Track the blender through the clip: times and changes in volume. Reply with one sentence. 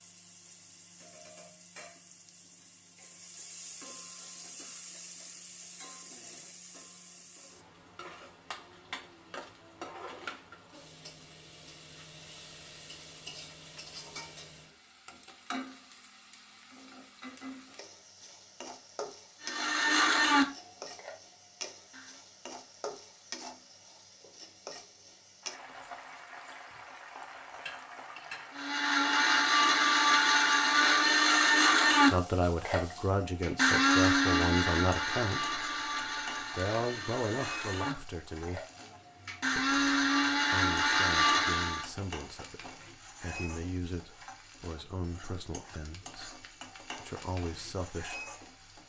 You can hear the blender briefly from 19.4 to 22.2 s; and from 28.6 to 41.9 s, getting quieter then louder.